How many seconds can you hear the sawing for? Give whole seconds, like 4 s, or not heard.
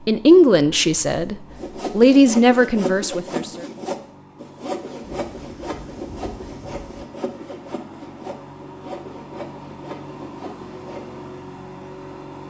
10 s.